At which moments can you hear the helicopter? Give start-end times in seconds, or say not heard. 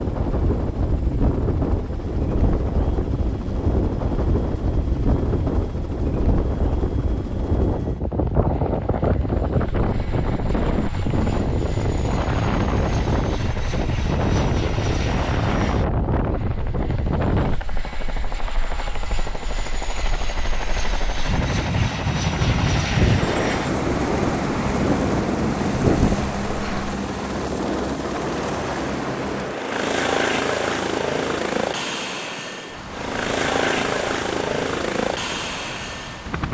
0.0-36.4.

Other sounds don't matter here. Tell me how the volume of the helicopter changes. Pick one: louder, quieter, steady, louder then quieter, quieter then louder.
louder.